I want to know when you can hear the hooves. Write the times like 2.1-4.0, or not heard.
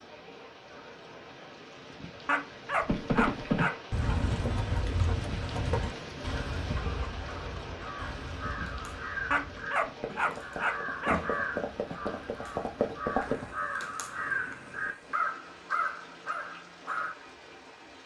2.9-13.6.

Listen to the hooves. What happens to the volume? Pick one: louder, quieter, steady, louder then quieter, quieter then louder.
quieter then louder.